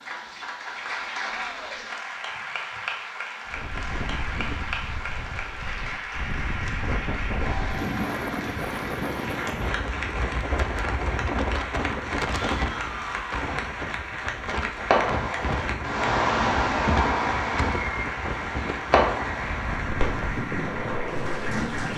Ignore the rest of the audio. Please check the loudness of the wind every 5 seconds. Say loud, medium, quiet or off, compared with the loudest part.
medium, loud, loud, loud, loud.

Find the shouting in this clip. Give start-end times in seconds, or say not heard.
1.3-1.9, 12.3-13.4.